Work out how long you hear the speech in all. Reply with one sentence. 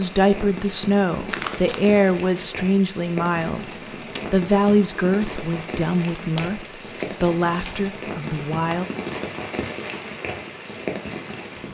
The speech can be heard for 8 seconds in total.